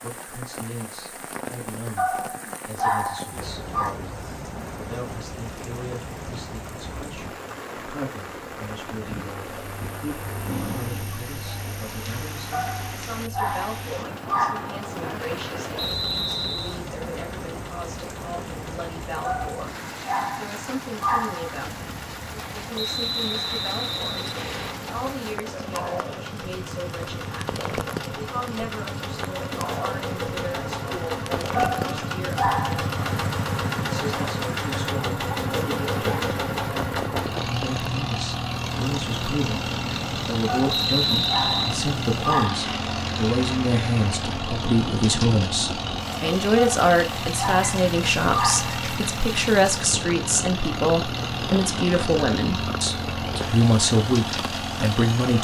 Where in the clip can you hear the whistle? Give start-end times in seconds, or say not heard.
15.8-16.8, 22.8-24.8, 40.6-41.6.